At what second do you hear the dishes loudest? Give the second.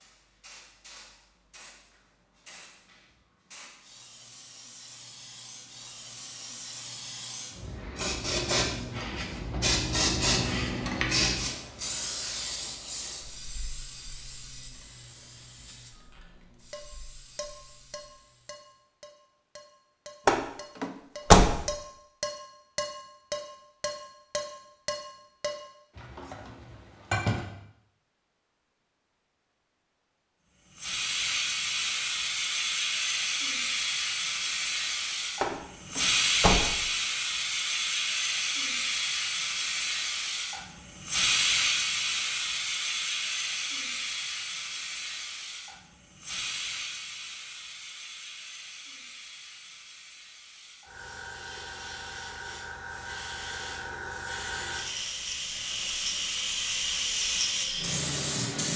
27 s.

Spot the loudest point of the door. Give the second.
21 s.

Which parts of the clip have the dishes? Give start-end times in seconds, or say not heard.
16.7-27.6.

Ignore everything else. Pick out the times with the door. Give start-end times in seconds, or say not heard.
20.2-21.6, 35.4-36.8.